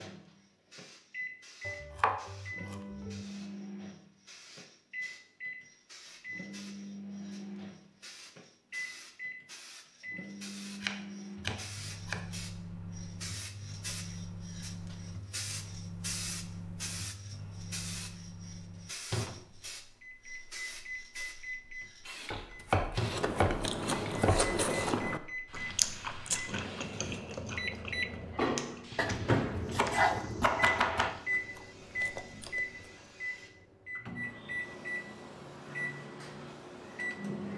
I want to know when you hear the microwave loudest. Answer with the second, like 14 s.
29 s.